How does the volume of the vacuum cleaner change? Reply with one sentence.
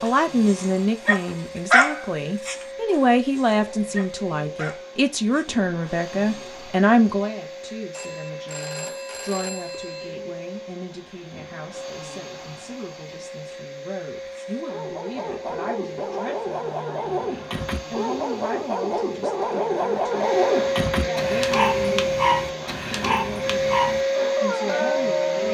The volume of the vacuum cleaner goes up.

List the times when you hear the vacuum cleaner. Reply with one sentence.
You can hear the vacuum cleaner from 0.0 to 25.4 s.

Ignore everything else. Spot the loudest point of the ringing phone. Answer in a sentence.
The volume of the ringing phone peaks at 9 seconds.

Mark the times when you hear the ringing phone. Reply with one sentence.
You can hear the ringing phone from 7.9 to 10.1 s.